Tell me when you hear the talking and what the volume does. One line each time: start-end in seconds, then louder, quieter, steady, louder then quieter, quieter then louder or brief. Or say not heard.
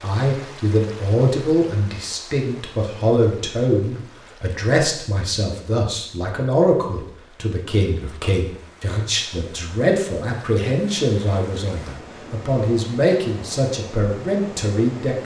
0.0-15.2 steady.